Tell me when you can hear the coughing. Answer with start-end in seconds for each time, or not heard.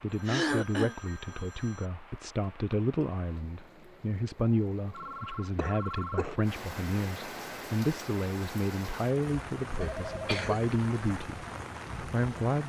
0.2-0.9, 5.5-6.5, 9.8-10.8.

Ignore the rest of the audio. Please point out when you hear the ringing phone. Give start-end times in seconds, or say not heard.
0.1-1.9, 4.9-6.3, 9.8-10.3.